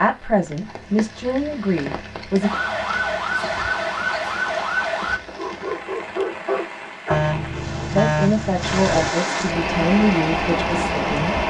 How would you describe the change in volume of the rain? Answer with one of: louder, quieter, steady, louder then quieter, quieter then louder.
louder.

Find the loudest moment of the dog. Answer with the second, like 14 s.
6 s.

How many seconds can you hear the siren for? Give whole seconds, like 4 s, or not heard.
3 s.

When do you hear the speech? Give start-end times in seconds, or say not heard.
0.0-2.5, 7.9-11.4.